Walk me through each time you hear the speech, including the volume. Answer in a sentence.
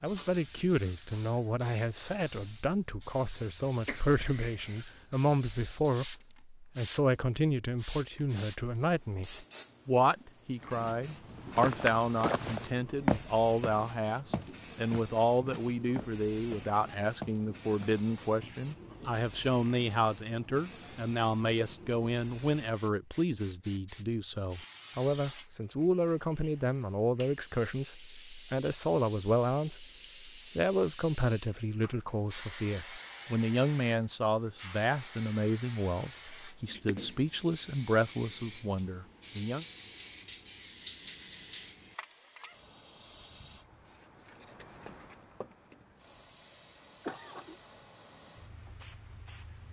You can hear the speech from 0.0 to 39.6 s, at a steady volume.